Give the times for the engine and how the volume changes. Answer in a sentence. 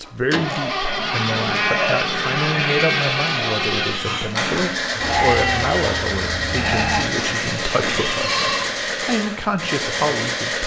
The engine can be heard from 0.0 to 10.6 s, at a steady volume.